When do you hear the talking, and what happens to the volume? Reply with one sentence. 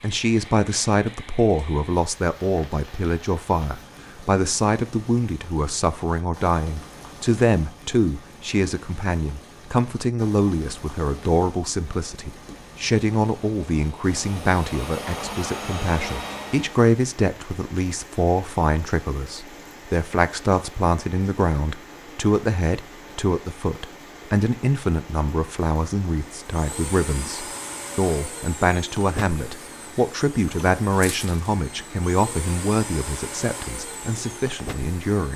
You can hear the talking from 0.0 to 35.3 s, at a steady volume.